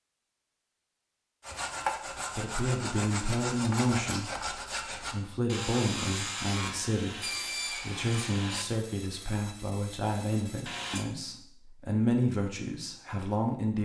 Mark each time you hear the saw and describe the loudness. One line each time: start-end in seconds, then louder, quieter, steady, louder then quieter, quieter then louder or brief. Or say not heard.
1.4-11.1 quieter.